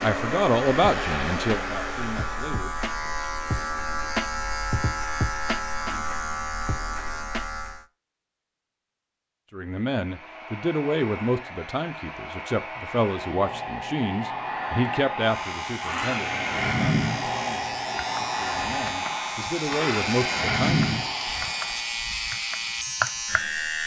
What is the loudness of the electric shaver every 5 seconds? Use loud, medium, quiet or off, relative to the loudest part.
loud, loud, off, medium, loud.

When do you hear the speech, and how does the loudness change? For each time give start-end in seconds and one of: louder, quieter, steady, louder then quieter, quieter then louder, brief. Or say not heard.
0.0-2.8 brief
9.5-21.1 quieter then louder.